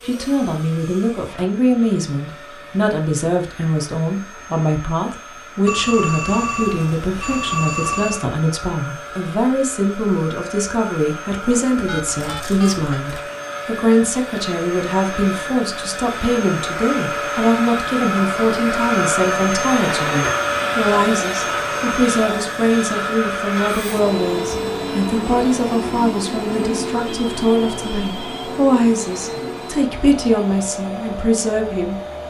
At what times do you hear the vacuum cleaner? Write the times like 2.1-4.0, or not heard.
0.0-32.2.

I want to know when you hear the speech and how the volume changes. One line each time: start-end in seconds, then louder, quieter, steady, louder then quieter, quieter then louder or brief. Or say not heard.
0.1-32.2 steady.